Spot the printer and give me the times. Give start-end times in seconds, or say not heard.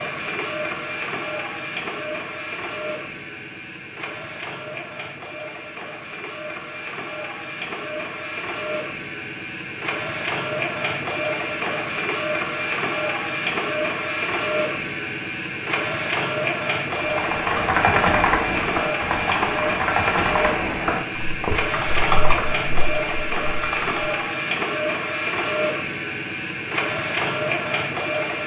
0.0-28.4.